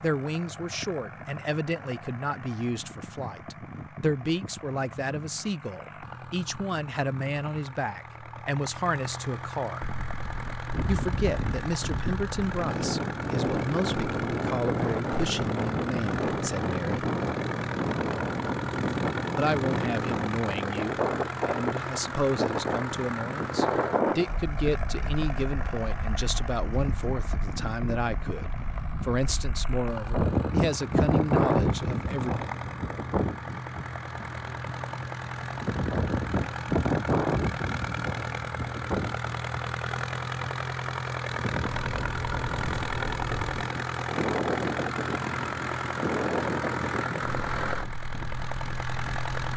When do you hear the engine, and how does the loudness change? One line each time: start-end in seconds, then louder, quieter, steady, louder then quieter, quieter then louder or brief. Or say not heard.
0.0-49.5 louder.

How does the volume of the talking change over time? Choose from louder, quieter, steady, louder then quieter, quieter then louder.
steady.